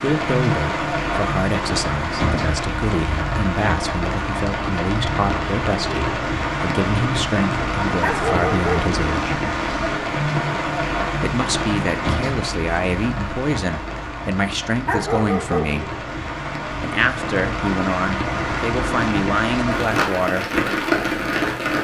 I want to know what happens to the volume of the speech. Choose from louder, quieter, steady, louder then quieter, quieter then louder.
steady.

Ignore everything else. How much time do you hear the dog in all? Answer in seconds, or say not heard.
2 s.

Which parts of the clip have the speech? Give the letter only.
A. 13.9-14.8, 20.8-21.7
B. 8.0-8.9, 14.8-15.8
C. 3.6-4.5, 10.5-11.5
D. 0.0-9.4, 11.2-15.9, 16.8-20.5
D.